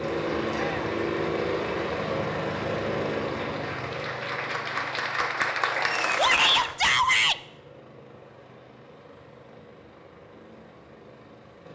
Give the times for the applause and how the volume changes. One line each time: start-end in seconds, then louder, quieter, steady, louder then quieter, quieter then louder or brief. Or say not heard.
0.0-6.8 louder.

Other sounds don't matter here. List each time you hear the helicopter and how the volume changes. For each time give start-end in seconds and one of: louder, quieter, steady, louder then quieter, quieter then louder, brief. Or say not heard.
0.0-11.7 quieter.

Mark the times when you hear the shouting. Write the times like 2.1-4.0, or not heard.
0.5-0.9, 6.2-7.4.